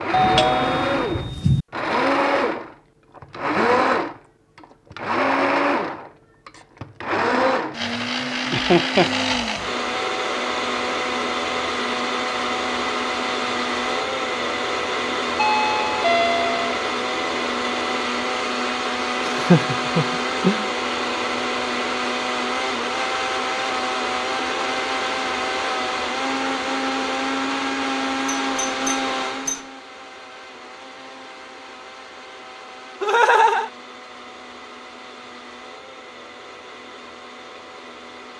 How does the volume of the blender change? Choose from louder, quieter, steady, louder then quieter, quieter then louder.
quieter.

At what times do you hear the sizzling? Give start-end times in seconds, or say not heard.
not heard.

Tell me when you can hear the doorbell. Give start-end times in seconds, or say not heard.
0.1-1.6, 15.3-16.8, 28.4-29.6.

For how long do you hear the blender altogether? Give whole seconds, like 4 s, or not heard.
38 s.